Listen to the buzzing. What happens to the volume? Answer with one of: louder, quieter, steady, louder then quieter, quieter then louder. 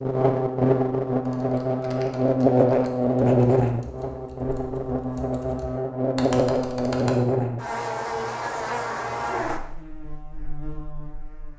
quieter.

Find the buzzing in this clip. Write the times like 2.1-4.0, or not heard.
0.0-11.5.